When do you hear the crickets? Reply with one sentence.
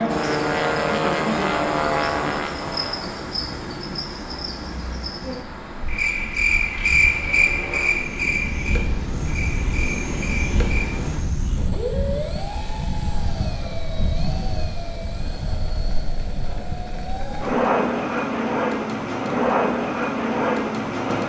You can hear the crickets from 0.0 to 10.9 s.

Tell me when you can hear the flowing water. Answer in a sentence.
You can hear the flowing water from 0.0 to 11.3 s.